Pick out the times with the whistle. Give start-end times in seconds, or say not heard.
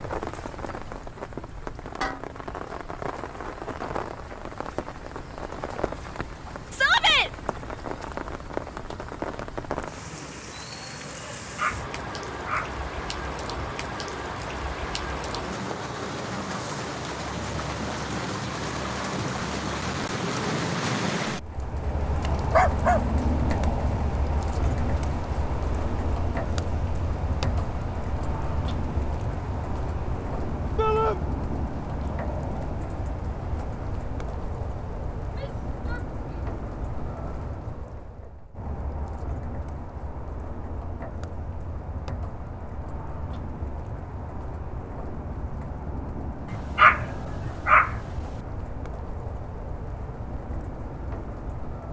not heard.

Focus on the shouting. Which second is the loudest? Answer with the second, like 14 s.
7 s.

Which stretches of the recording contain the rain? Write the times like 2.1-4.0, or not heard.
0.0-51.8.